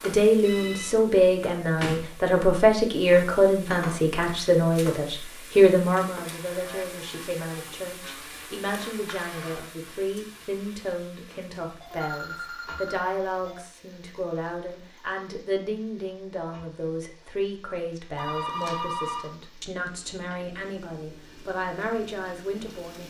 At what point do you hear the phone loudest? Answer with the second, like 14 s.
19 s.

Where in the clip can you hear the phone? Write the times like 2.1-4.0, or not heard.
0.4-0.9, 11.6-13.6, 18.1-19.3.